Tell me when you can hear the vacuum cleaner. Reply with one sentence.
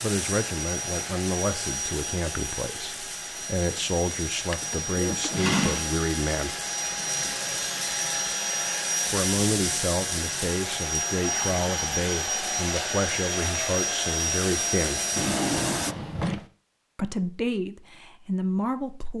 You can hear the vacuum cleaner from 0.0 to 15.9 s.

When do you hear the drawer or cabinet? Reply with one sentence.
You can hear the drawer or cabinet from 4.1 to 5.9 s and from 15.2 to 16.4 s.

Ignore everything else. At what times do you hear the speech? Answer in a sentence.
The speech can be heard from 0.0 to 6.6 s, from 9.1 to 15.1 s and from 16.9 to 19.1 s.